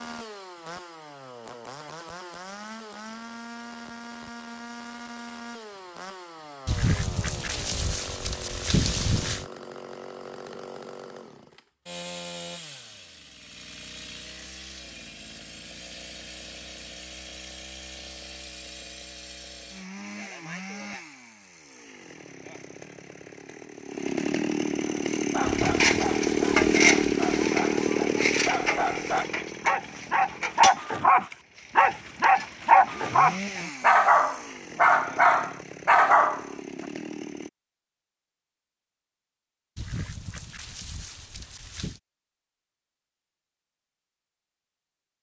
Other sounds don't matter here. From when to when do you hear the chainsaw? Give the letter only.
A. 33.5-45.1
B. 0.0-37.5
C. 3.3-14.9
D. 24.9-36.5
B.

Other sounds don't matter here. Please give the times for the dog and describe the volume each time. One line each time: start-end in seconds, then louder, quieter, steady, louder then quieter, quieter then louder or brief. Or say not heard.
24.9-36.5 louder.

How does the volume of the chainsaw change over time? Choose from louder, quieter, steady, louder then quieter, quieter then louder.
louder then quieter.